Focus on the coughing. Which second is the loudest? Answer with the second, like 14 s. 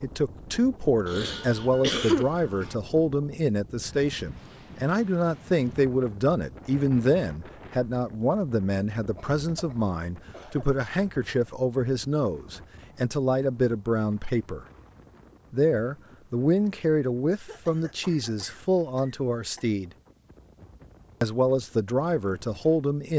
2 s.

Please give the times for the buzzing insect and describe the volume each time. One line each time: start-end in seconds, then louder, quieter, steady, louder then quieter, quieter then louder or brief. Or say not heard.
not heard.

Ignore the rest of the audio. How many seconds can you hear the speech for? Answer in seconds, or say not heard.
21 s.